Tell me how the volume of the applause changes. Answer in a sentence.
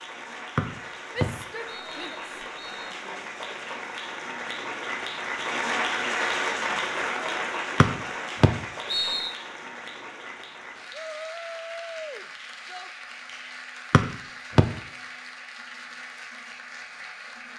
The loudness of the applause goes up, then down.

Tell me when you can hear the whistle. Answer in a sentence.
You can hear the whistle from 0.6 to 3.0 s, from 7.8 to 9.3 s and from 13.9 to 14.7 s.